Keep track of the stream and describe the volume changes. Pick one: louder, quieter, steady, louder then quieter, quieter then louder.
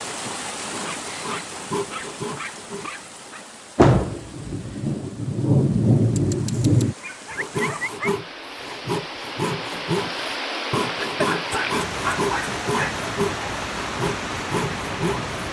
quieter then louder.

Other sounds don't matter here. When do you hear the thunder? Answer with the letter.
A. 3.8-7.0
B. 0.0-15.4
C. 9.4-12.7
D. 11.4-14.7
A.